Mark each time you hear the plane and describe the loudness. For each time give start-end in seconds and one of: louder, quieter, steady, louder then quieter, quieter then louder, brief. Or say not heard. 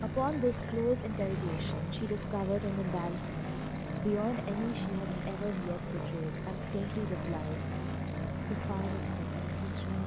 0.0-10.0 steady.